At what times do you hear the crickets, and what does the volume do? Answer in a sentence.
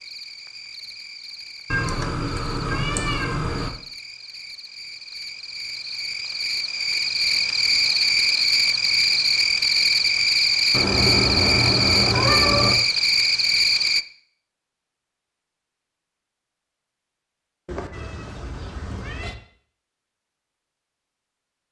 You can hear the crickets from 0.0 to 14.1 s, getting louder.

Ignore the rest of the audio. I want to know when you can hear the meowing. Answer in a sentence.
The meowing can be heard from 1.7 to 3.7 s, from 10.7 to 12.8 s and from 17.6 to 19.4 s.